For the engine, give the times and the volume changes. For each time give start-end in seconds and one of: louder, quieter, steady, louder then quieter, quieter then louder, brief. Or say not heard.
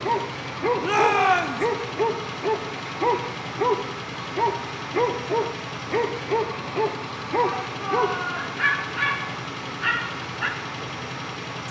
0.0-11.6 steady.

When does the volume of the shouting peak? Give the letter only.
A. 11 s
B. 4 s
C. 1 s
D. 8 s
C.